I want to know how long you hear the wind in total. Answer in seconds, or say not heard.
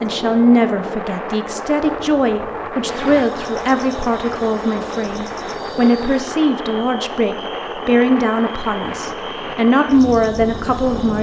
11 s.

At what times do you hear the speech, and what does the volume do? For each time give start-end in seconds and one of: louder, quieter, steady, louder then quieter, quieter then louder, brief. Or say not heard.
0.0-11.1 steady.